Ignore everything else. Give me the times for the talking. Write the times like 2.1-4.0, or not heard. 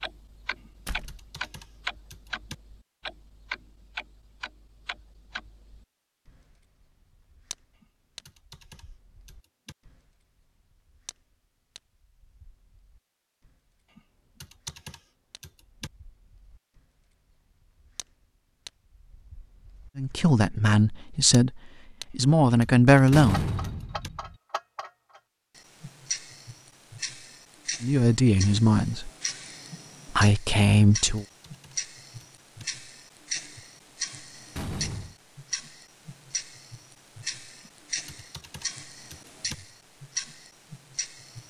19.9-23.5, 27.8-29.1, 30.1-31.2.